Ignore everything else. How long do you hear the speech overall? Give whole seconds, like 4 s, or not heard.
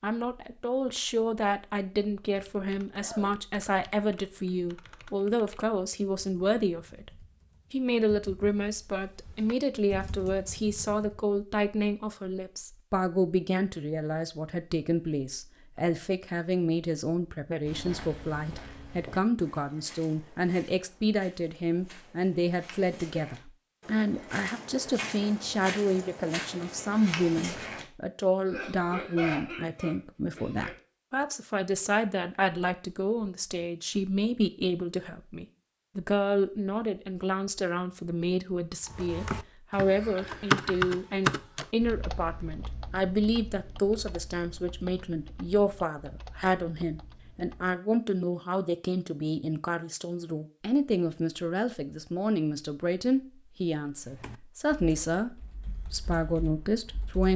57 s.